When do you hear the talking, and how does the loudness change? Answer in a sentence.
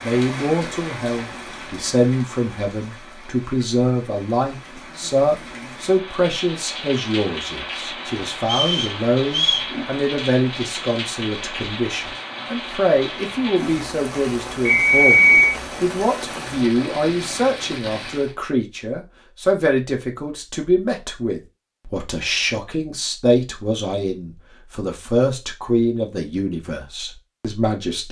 The talking can be heard from 0.0 to 28.0 s, at a steady volume.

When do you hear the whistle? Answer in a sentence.
The whistle can be heard from 8.4 to 9.7 s and from 14.7 to 15.6 s.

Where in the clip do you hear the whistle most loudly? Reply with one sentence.
The loudest moment of the whistle is at 15 seconds.